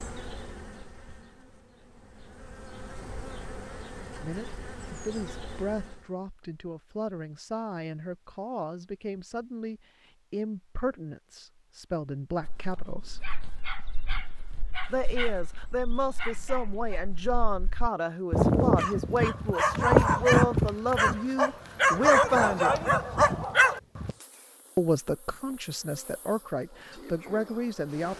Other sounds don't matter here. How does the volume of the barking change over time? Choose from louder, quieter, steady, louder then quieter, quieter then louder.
louder.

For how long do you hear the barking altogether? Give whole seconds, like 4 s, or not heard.
12 s.